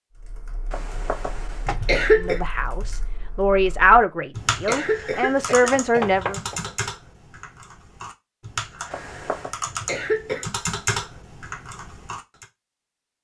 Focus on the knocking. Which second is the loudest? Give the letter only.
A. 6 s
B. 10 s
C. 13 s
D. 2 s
A.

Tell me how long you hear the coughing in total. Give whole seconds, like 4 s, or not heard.
4 s.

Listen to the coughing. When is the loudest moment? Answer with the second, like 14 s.
2 s.